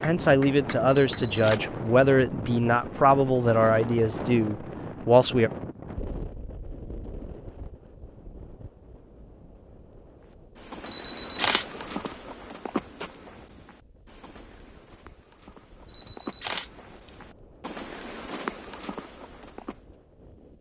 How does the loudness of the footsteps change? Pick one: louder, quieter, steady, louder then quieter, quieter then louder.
quieter then louder.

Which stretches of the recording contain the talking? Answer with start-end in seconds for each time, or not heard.
0.0-5.5.